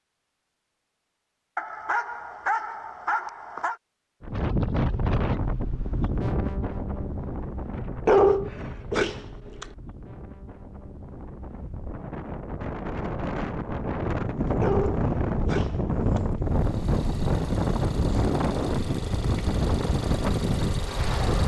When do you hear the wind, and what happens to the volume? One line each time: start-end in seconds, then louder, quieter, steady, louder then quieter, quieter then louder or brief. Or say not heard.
4.2-21.4 quieter then louder.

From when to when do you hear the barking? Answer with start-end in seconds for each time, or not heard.
1.6-3.8, 8.1-9.7, 14.6-16.2.